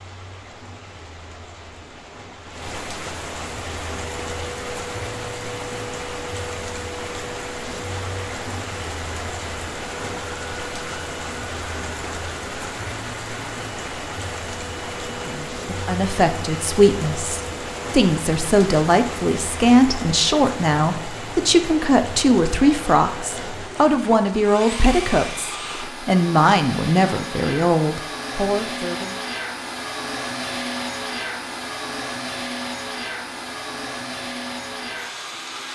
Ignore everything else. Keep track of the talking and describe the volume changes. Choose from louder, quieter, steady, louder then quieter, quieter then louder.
steady.